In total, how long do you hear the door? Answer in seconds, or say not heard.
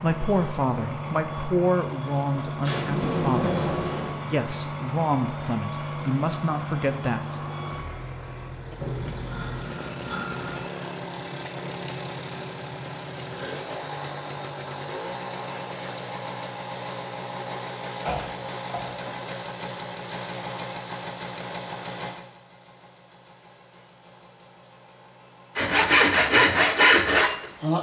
3 s.